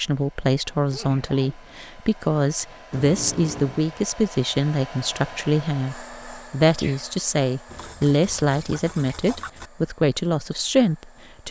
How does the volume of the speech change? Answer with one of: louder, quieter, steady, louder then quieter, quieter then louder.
steady.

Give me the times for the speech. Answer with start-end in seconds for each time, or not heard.
0.0-11.4.